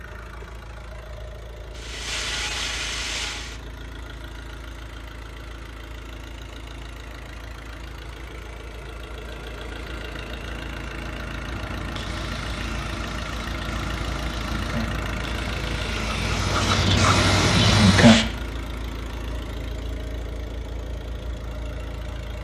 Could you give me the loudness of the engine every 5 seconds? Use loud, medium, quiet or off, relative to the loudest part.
medium, medium, loud, loud, medium.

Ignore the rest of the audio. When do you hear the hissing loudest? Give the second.
18 s.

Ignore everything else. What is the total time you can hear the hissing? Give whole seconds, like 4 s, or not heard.
9 s.